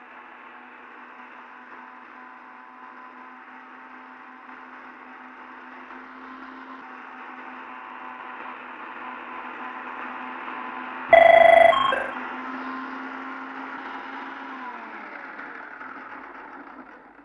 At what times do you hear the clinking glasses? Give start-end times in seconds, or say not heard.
not heard.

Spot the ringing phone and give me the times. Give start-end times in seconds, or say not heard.
11.1-12.1.